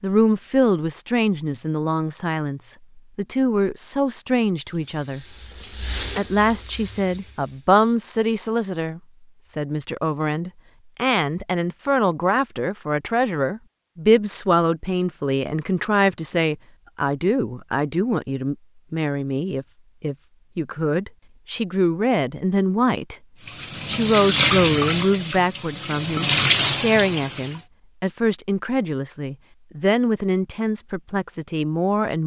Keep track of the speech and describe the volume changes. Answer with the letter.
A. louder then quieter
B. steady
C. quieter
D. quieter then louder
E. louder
B.